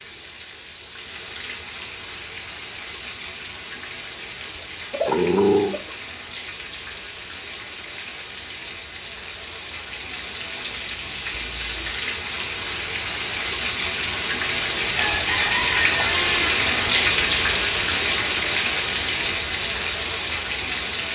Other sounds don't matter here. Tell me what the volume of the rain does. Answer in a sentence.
The volume of the rain goes up.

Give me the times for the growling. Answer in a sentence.
You can hear the growling from 5.0 to 5.8 s.